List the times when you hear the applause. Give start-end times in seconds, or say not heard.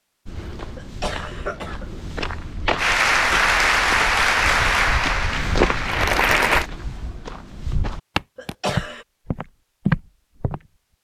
2.8-6.7.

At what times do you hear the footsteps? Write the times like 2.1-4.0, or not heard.
0.2-10.6.